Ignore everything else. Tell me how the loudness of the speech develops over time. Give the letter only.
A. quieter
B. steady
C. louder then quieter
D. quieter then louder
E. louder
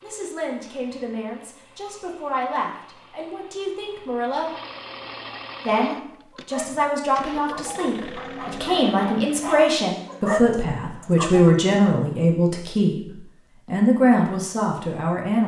E.